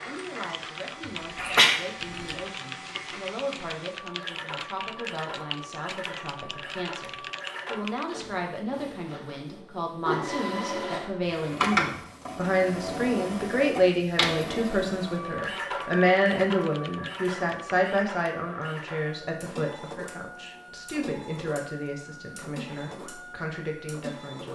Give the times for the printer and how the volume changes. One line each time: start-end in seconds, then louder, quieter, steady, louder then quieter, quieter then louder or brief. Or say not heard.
0.0-24.4 louder then quieter.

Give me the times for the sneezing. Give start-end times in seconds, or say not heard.
1.4-2.4.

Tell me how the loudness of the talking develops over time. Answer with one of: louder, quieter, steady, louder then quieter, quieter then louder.
louder then quieter.